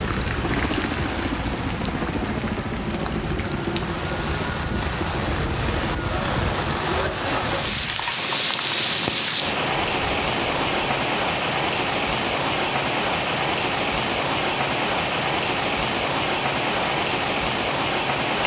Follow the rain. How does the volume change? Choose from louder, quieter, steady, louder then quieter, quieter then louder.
louder.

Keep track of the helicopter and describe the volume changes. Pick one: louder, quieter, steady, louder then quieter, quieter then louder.
quieter.